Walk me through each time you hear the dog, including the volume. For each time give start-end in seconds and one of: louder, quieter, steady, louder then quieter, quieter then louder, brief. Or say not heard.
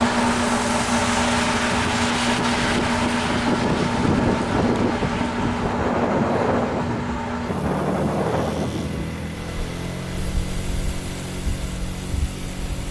not heard.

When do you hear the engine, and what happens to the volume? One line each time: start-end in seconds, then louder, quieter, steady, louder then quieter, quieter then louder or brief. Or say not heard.
0.0-12.8 quieter.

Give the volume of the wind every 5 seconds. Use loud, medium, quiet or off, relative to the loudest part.
loud, loud, quiet.